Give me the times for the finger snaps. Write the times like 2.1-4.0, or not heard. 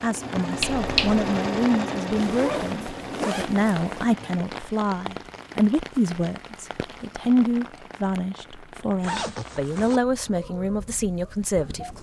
0.6-1.2.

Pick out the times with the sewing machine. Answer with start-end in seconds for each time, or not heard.
0.0-4.5.